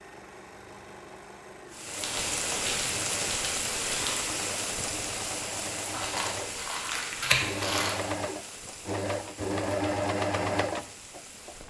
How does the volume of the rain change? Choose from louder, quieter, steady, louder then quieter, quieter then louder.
quieter.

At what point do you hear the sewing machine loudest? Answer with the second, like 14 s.
10 s.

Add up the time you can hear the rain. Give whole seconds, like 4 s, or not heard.
10 s.